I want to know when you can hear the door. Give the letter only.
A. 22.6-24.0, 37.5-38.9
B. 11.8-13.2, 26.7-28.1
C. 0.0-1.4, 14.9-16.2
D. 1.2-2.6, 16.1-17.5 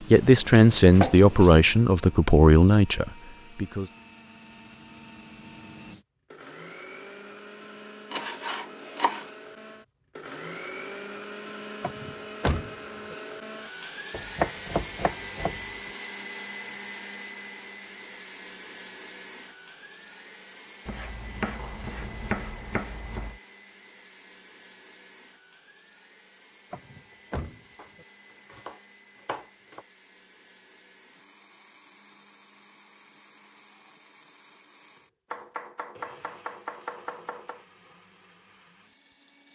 B.